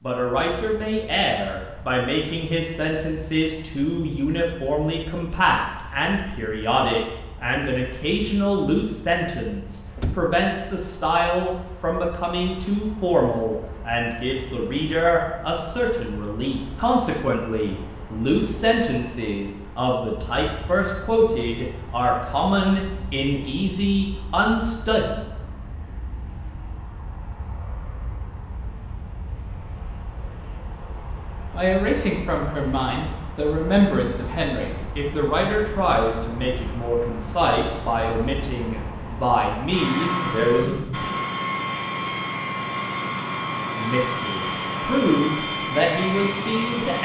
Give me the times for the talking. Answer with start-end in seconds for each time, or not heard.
0.0-25.1, 31.5-40.8, 43.8-46.9.